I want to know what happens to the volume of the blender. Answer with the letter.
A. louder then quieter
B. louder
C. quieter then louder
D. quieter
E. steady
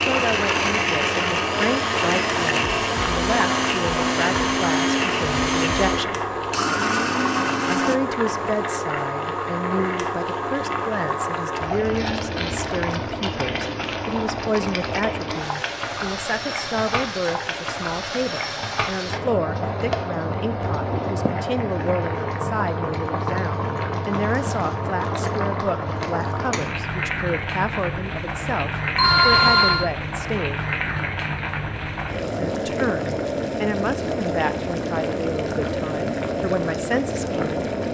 E.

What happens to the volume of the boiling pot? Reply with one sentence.
The loudness of the boiling pot stays about the same.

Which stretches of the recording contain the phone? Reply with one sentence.
The phone can be heard from 28.9 to 29.9 s.